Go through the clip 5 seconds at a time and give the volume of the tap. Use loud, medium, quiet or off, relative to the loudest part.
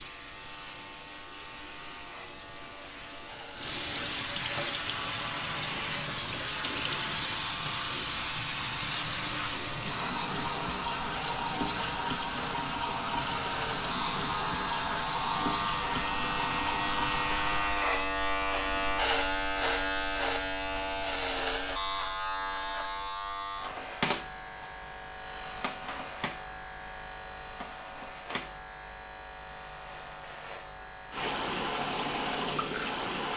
medium, loud, loud, loud, off, off, loud.